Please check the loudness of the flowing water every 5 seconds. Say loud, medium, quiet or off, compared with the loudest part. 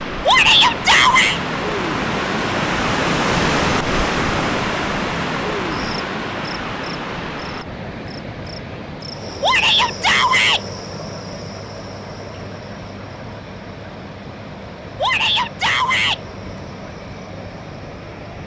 loud, medium, quiet, quiet.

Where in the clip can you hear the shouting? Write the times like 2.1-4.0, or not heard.
0.2-1.4, 9.4-10.6, 14.9-16.2.